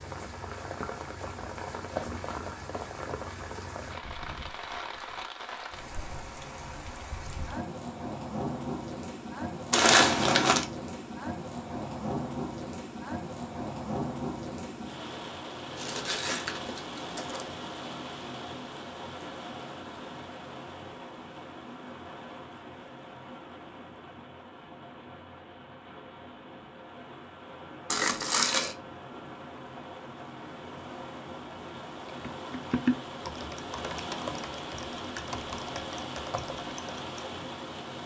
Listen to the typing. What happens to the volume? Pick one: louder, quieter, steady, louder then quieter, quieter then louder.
quieter.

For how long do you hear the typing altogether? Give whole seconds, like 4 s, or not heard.
5 s.